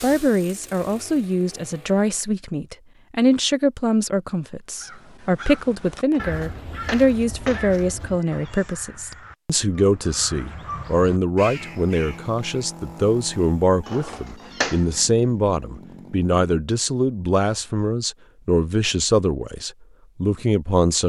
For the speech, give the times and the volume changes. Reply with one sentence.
You can hear the speech from 0.0 to 21.0 s, at a steady volume.